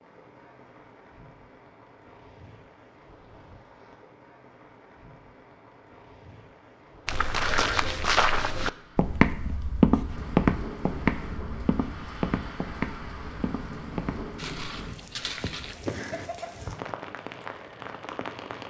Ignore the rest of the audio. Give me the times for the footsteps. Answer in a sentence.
The footsteps can be heard from 7.0 to 16.3 s.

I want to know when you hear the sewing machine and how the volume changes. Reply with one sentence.
You can't hear the sewing machine here.